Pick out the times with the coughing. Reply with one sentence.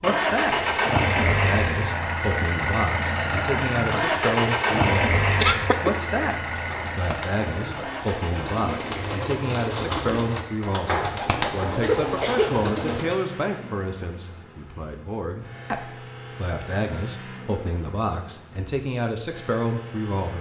The coughing can be heard from 5.4 to 6.0 s and from 11.8 to 12.7 s.